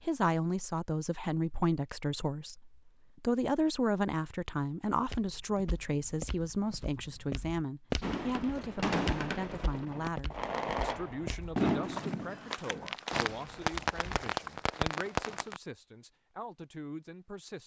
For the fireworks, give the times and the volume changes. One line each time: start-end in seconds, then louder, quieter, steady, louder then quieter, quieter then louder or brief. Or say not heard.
8.0-15.6 steady.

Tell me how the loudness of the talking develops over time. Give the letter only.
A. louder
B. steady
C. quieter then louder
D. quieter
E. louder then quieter
D.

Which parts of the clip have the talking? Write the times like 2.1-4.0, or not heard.
0.0-17.6.